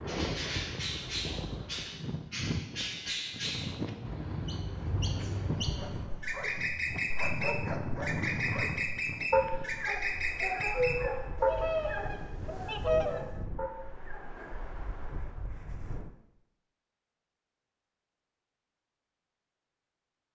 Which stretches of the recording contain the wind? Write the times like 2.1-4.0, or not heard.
0.0-16.1.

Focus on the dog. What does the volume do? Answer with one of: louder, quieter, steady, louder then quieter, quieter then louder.
louder then quieter.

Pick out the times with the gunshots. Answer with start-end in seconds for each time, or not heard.
not heard.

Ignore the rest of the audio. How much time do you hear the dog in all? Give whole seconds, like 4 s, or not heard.
9 s.